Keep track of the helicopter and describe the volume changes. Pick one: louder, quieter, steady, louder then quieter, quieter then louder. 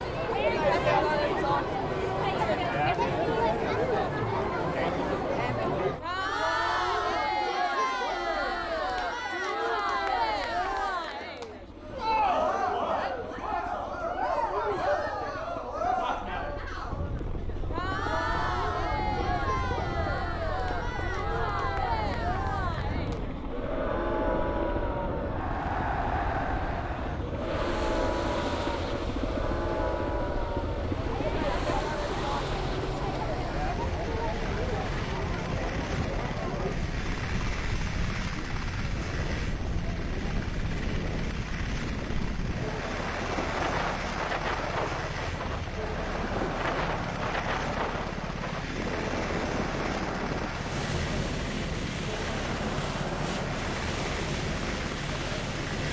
louder.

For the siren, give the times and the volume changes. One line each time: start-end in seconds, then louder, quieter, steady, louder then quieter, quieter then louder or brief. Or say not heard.
not heard.